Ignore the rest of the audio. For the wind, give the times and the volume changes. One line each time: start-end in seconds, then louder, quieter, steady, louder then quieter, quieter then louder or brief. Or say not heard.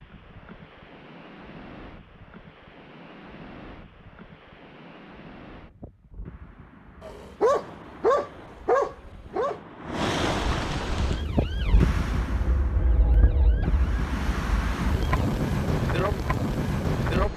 0.0-17.3 louder.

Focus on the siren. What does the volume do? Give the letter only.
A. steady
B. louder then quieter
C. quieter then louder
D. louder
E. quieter
B.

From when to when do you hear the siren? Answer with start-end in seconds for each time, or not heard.
11.0-15.2.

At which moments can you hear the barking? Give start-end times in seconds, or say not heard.
7.0-9.6.